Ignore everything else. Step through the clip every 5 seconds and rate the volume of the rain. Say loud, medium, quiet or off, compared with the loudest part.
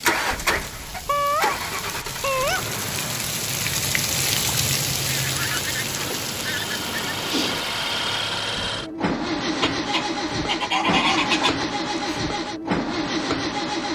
loud, loud, off.